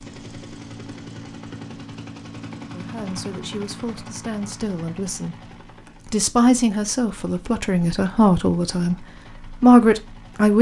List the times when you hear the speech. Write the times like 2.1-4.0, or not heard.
2.6-5.3, 6.0-10.5.